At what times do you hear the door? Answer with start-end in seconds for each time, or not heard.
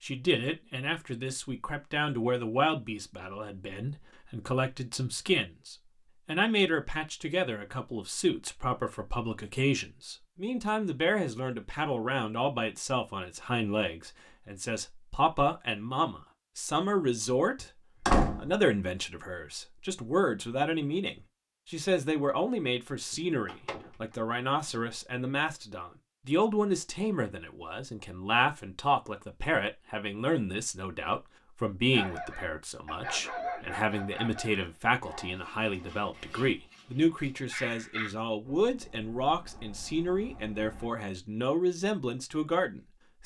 17.6-18.6, 23.1-23.9.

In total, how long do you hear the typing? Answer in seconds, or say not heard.
not heard.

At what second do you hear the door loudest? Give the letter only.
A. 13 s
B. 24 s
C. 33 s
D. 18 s
D.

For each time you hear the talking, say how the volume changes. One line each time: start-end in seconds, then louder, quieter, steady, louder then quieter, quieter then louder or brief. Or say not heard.
0.0-43.2 steady.